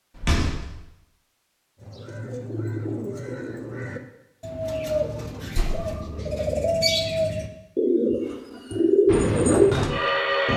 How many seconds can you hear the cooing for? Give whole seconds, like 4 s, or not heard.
8 s.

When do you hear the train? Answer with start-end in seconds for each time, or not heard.
9.1-10.5.